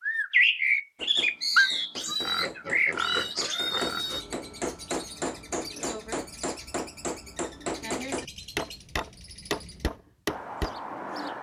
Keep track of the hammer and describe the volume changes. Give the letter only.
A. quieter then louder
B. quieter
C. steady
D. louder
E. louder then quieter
D.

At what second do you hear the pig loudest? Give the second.
3 s.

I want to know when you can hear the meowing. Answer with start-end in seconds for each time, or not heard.
1.6-2.1.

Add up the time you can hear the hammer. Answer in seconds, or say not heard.
10 s.